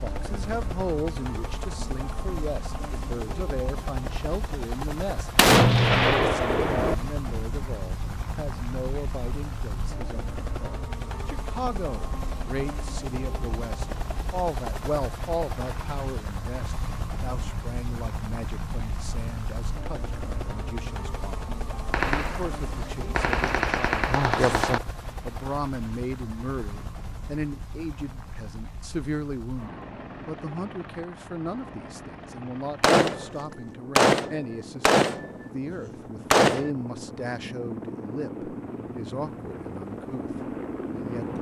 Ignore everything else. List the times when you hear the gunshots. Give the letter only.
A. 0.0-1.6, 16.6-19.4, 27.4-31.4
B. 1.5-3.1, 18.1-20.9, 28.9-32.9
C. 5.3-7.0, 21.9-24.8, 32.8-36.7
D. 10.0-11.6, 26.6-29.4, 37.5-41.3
C.